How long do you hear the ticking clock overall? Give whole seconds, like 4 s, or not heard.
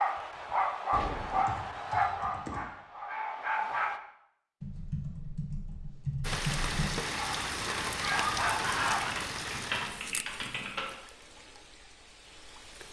not heard.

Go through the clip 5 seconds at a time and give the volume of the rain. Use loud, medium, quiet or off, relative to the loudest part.
off, loud, quiet.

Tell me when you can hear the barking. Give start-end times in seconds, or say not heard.
0.0-4.0, 7.2-9.2.